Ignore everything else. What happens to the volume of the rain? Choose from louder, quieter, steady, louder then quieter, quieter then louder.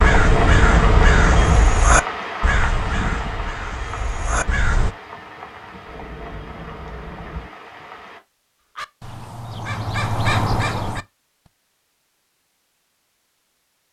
quieter.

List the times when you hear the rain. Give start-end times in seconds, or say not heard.
0.0-8.2.